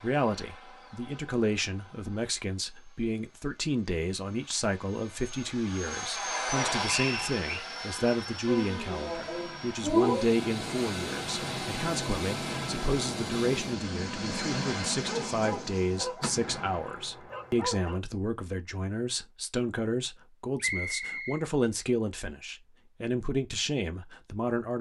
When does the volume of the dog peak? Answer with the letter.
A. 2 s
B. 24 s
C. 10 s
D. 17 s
C.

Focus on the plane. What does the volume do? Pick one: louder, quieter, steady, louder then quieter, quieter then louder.
louder.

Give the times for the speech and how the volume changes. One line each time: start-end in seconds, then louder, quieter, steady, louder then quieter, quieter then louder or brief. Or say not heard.
0.0-24.7 steady.